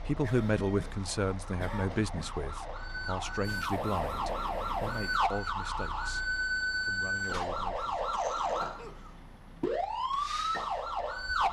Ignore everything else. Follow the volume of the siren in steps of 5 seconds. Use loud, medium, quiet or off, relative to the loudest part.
medium, loud, loud.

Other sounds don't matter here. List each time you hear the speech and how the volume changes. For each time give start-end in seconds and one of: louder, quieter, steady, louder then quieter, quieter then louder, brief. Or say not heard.
0.1-6.2 quieter
6.8-8.1 brief.